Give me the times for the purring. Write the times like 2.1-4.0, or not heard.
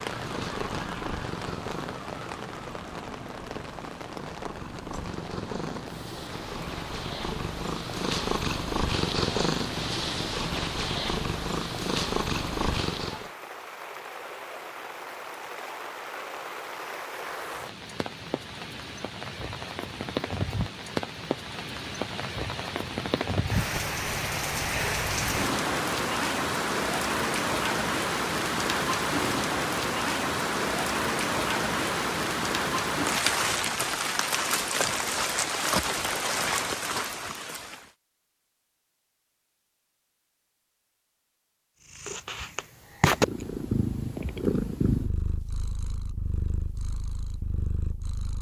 0.0-13.3, 41.9-48.3.